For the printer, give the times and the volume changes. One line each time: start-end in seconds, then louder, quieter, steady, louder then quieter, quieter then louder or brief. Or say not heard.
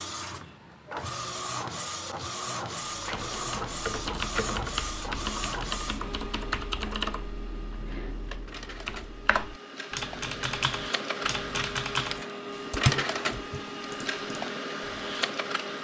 0.0-15.7 quieter then louder.